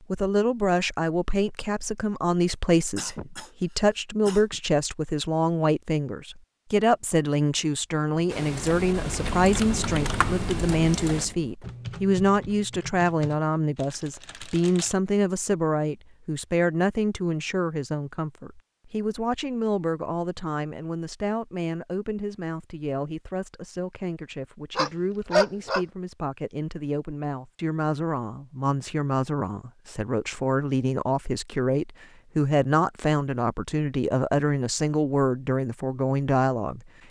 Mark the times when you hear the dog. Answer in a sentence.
The dog can be heard from 24.8 to 25.9 s.